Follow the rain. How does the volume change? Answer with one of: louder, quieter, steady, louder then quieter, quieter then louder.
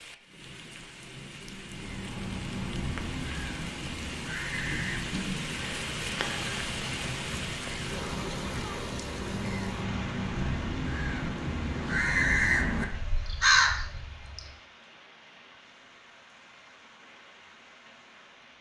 louder then quieter.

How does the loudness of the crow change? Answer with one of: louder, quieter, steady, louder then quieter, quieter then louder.
louder.